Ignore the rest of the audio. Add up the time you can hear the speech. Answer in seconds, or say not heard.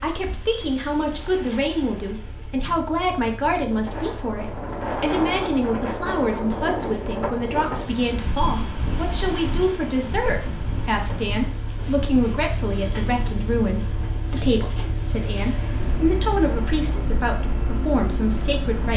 19 s.